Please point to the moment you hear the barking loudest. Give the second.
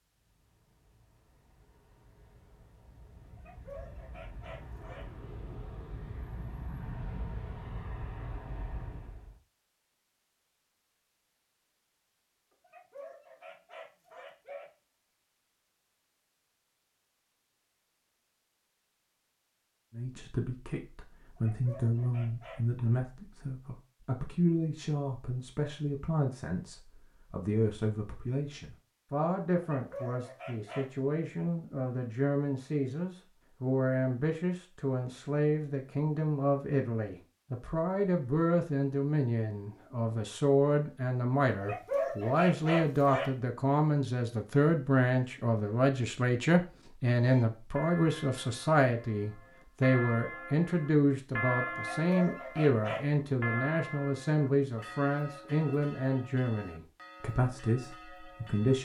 42 s.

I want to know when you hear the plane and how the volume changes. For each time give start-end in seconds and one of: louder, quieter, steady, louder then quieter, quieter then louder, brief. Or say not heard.
0.1-9.4 louder.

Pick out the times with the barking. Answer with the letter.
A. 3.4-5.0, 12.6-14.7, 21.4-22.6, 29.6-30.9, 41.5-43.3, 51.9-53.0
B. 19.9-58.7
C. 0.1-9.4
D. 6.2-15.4
A.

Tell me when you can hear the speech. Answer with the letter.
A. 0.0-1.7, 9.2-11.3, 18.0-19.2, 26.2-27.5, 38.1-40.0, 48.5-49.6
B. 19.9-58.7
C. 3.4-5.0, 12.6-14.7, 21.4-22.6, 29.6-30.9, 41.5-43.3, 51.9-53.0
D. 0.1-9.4
B.